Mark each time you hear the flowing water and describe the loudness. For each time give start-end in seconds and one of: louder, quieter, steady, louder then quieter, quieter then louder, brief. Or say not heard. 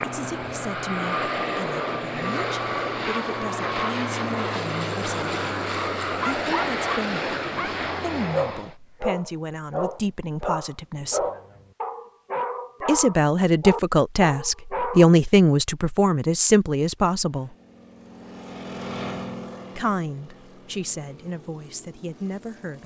not heard.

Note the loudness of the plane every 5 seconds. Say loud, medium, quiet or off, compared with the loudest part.
loud, loud, off, medium, quiet.